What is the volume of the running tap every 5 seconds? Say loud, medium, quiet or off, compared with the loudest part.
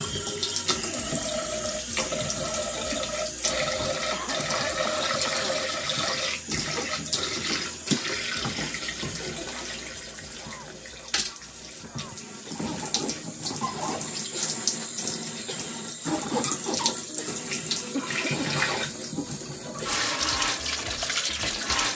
loud, loud, medium, loud, loud.